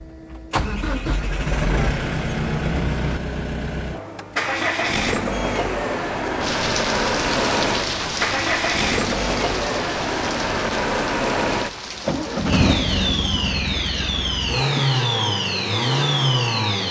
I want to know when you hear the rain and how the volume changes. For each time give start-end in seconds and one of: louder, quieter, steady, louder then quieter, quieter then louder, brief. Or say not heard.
6.3-16.8 quieter.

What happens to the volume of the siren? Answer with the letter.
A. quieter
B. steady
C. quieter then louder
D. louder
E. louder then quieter
B.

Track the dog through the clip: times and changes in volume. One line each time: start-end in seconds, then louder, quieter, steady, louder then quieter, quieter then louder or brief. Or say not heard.
not heard.